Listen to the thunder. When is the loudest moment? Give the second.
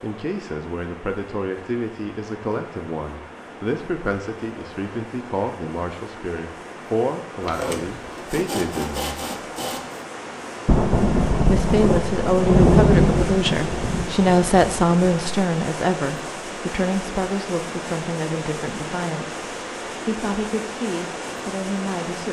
13 s.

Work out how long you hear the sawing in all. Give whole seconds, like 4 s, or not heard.
3 s.